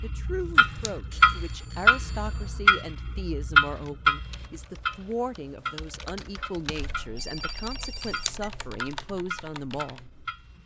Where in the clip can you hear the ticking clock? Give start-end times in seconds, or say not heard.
0.0-10.6.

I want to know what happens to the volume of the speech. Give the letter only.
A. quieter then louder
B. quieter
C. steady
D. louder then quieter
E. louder
C.